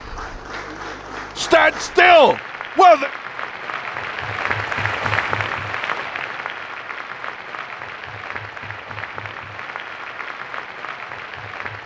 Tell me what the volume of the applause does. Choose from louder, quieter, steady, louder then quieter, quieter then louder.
louder then quieter.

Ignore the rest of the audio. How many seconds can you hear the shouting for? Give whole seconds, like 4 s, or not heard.
2 s.